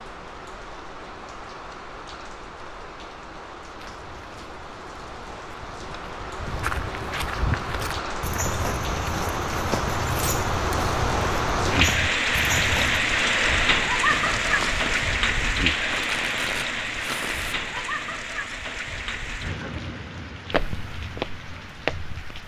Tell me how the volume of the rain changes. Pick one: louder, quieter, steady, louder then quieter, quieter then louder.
louder then quieter.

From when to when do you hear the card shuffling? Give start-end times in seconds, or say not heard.
15.9-17.9.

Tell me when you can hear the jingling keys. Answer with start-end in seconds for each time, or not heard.
14.1-15.1.